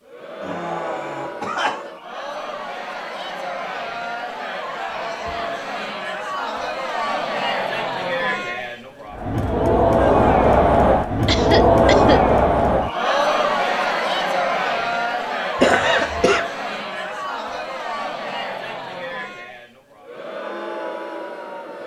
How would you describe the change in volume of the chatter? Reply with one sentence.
The volume of the chatter goes up, then down.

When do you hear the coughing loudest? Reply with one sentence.
The loudest moment of the coughing is at 16 seconds.